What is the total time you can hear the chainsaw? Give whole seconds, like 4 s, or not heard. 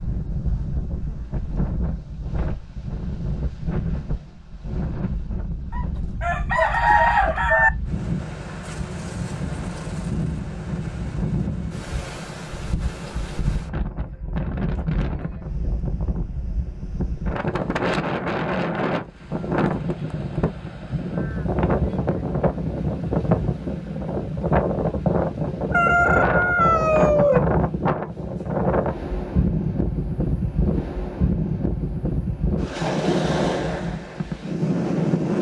not heard.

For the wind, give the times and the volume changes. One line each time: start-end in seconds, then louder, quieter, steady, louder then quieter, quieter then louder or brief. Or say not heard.
0.0-35.3 louder.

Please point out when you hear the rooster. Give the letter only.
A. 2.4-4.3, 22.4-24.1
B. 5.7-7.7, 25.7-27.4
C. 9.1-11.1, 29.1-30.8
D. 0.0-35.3
B.